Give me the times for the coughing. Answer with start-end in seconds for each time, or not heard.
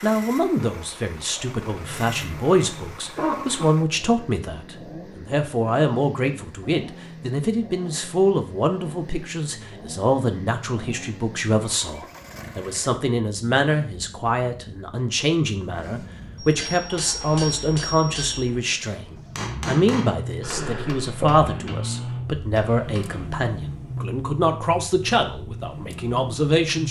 1.8-3.7, 20.4-21.4.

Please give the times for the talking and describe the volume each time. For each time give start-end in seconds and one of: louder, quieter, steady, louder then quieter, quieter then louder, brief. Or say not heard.
0.0-26.8 steady.